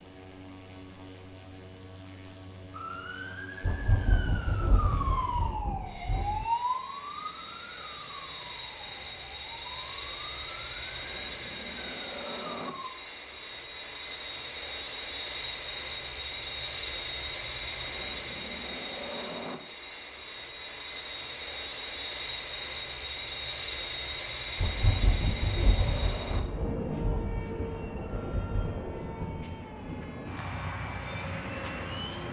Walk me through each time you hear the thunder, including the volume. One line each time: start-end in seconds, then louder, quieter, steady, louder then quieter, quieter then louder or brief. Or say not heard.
3.6-6.5 brief
24.6-28.9 quieter.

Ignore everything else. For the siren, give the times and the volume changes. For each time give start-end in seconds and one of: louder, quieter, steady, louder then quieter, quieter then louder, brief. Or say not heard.
2.8-12.9 louder then quieter.